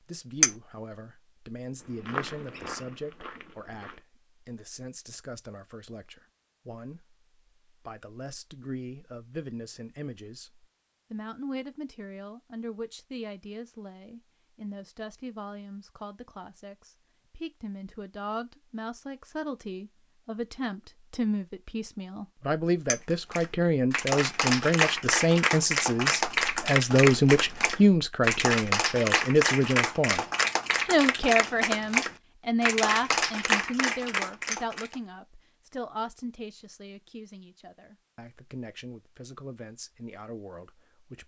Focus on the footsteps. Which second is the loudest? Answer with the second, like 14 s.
2 s.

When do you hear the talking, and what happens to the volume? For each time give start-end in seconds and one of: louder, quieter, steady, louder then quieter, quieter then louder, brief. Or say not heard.
0.0-41.2 louder then quieter.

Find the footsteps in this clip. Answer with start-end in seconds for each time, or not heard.
1.8-4.0.